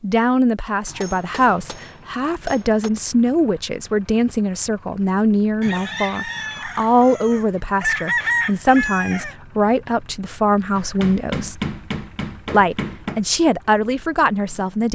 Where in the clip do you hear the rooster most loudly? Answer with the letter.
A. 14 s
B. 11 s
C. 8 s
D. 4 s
C.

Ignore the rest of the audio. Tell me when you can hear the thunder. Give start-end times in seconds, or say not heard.
not heard.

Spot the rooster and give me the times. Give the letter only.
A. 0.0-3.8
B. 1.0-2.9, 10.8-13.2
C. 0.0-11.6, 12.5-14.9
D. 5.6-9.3
D.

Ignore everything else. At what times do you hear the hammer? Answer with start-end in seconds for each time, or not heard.
1.0-2.9, 10.8-13.2.